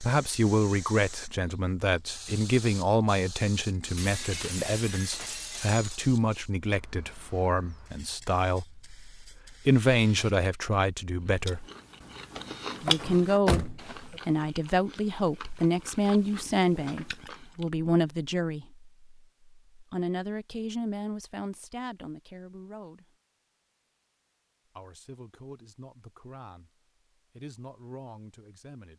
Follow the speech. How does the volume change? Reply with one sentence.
The loudness of the speech goes down.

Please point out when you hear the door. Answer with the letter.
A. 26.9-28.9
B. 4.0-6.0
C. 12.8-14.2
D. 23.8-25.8
C.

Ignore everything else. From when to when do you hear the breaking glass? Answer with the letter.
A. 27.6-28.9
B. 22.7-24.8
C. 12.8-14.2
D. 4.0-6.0
D.